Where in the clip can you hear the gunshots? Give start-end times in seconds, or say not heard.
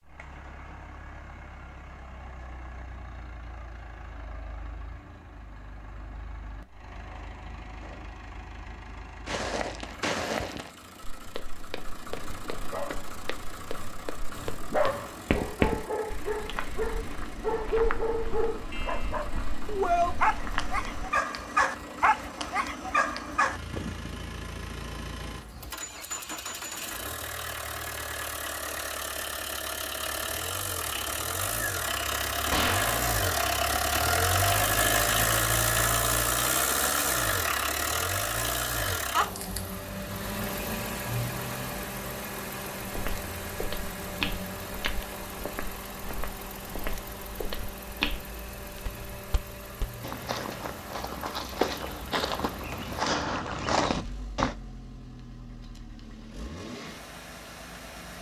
32.5-33.4.